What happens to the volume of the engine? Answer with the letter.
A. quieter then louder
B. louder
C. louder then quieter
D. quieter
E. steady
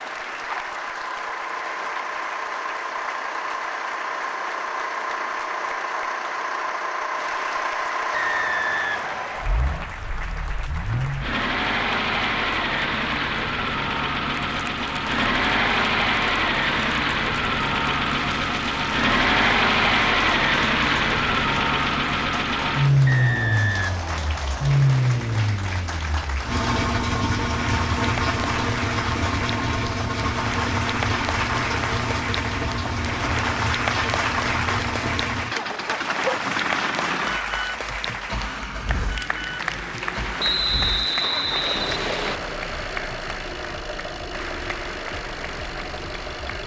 C.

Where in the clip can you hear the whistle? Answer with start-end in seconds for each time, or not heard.
8.1-9.9, 23.1-24.8, 40.4-42.4.